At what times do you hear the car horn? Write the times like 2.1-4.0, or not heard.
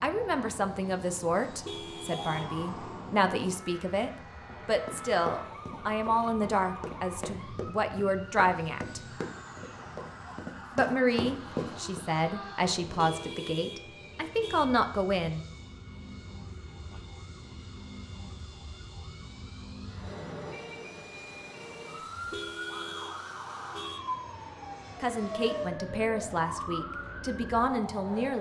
1.4-2.5, 12.8-14.7, 22.1-24.0.